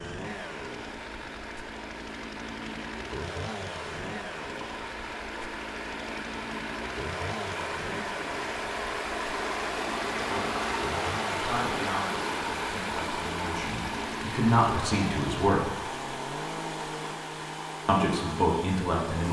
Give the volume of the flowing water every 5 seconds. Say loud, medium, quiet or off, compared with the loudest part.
medium, loud, loud, medium.